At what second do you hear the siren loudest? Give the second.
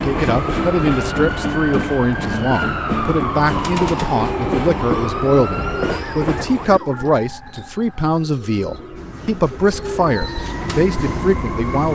3 s.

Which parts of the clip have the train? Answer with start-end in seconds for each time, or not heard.
0.0-6.8, 8.9-11.9.